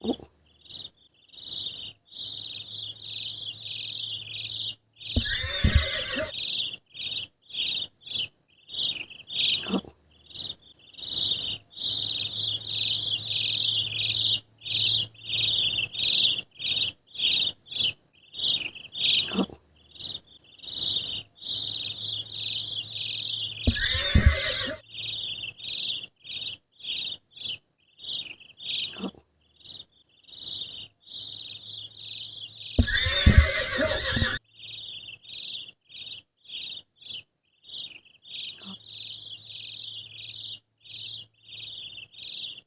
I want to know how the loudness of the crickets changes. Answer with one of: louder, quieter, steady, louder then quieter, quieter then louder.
louder then quieter.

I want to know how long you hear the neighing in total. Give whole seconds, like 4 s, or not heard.
4 s.